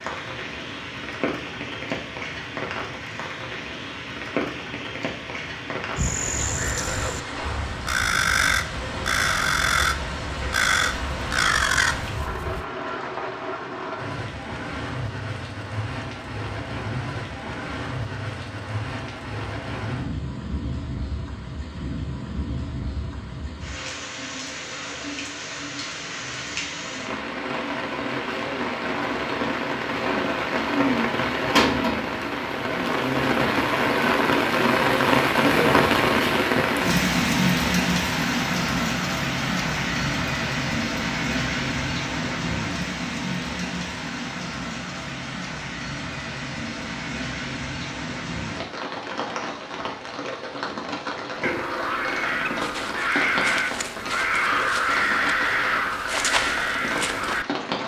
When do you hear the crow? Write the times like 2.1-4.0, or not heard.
6.0-12.7, 51.4-57.5.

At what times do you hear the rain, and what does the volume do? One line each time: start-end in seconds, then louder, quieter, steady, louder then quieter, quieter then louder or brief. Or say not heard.
0.0-57.8 louder then quieter.